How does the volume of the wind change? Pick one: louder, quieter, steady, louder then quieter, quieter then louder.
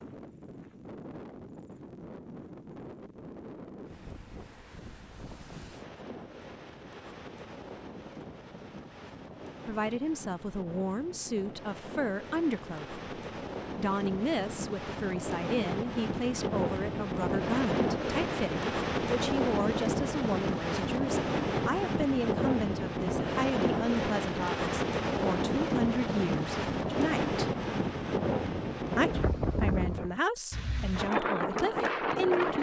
louder.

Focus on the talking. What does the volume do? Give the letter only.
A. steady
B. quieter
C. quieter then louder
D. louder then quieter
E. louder
A.